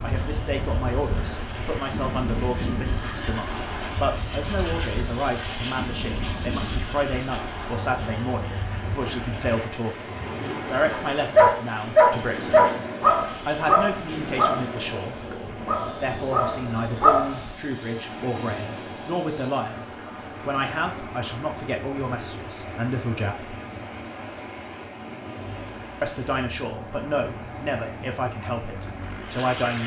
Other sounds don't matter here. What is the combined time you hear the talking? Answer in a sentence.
The talking can be heard for 26 seconds in total.